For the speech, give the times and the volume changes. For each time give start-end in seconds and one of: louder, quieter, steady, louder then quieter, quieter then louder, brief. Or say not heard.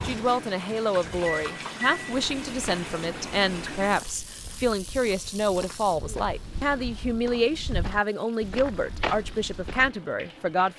0.0-10.7 steady.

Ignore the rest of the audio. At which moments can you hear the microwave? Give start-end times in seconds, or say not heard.
0.0-3.9.